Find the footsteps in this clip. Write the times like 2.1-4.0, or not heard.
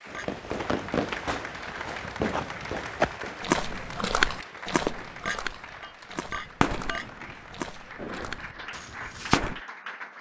0.4-9.4.